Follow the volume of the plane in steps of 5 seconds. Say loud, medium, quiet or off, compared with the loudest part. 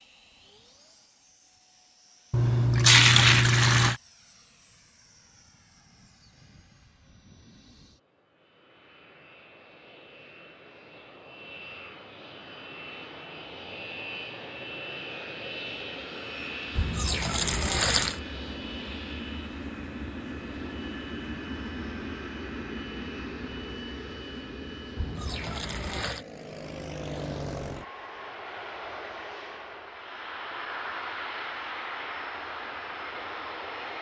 quiet, quiet, medium, loud, loud, loud, loud.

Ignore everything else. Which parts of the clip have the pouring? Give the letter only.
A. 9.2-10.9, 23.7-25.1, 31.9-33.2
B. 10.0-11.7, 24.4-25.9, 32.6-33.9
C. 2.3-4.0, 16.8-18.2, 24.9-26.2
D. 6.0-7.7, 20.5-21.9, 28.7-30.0
C.